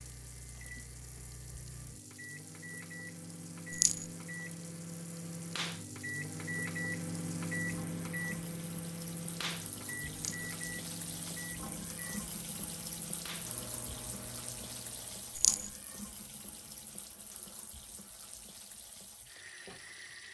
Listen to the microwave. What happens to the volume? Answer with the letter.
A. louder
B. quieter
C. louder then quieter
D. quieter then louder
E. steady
C.